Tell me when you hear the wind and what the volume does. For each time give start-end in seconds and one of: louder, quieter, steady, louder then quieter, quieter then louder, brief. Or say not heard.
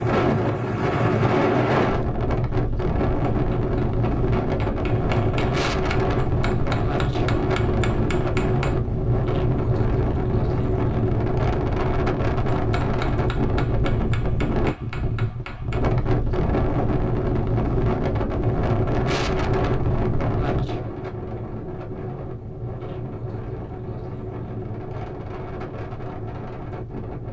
0.0-27.2 quieter.